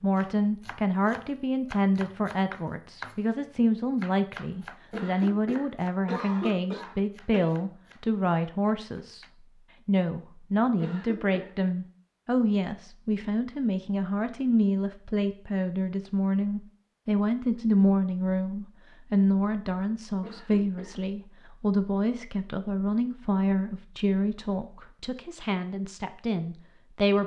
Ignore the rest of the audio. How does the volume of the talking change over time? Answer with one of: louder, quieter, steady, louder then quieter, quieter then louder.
steady.